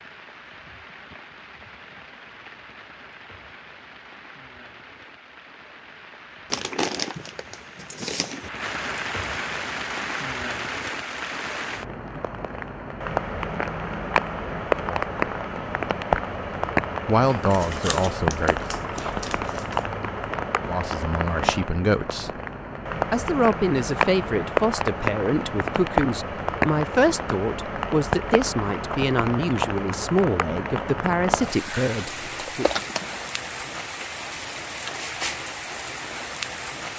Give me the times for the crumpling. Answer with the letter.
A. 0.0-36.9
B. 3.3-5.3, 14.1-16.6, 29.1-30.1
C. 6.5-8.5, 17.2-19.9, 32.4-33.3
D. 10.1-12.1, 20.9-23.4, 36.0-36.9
C.